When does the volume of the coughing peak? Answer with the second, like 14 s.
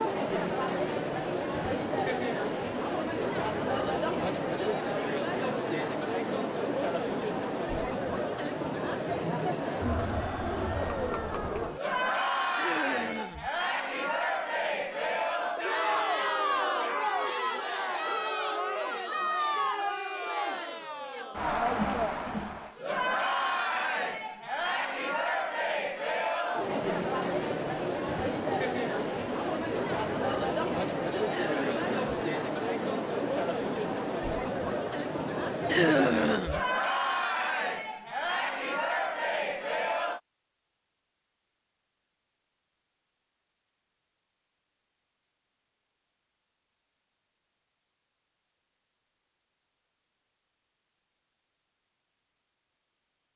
36 s.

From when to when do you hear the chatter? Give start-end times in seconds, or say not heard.
0.0-40.2.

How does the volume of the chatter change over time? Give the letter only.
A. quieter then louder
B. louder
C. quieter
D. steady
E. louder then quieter
D.